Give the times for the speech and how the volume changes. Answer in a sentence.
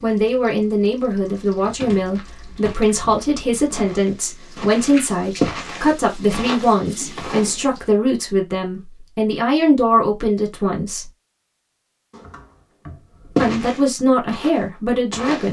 The speech can be heard from 0.0 to 11.1 s, at a steady volume; and briefly from 13.4 to 15.4 s.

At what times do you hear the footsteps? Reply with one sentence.
The footsteps can be heard from 2.0 to 7.5 s and from 13.3 to 15.4 s.